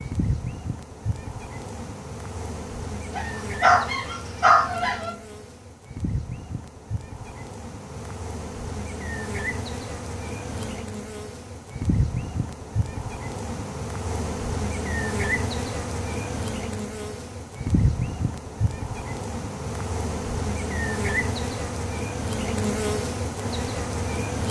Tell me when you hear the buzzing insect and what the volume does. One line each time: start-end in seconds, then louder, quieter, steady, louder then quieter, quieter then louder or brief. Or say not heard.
0.0-24.4 louder.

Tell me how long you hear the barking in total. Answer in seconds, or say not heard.
2 s.